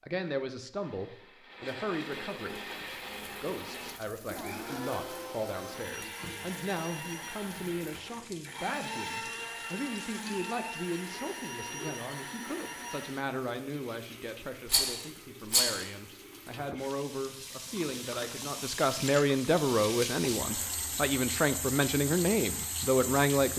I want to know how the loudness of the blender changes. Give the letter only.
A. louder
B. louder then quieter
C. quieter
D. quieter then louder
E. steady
E.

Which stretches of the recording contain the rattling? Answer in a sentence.
You can hear the rattling from 14.7 to 15.8 s.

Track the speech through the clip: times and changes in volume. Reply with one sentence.
You can hear the speech briefly from 0.0 to 2.7 s; and from 3.4 to 23.5 s, getting louder.